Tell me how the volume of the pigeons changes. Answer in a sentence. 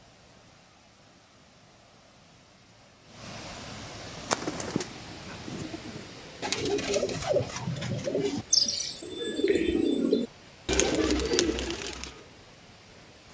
The volume of the pigeons goes up.